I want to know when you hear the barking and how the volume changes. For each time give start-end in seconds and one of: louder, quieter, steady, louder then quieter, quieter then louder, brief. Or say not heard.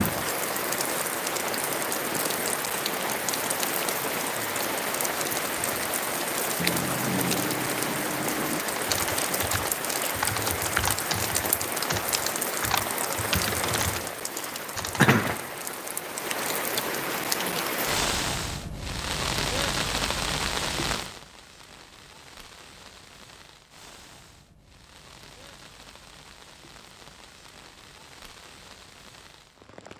not heard.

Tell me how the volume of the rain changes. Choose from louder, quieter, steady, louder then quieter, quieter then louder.
quieter.